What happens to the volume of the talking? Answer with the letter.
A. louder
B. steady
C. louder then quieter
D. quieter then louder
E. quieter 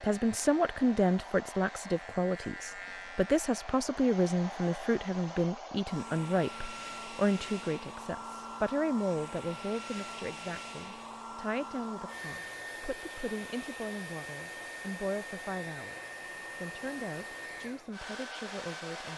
E.